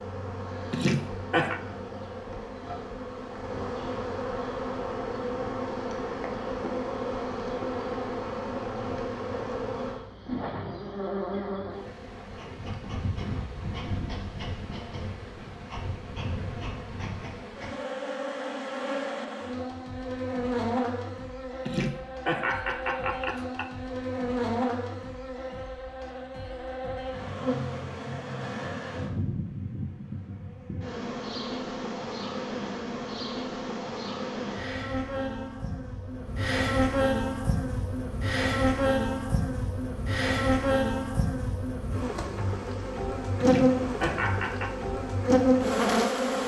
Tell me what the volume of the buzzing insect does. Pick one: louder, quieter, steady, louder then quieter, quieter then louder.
louder.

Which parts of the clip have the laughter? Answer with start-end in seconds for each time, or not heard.
0.7-1.6, 21.6-23.7, 43.4-44.8.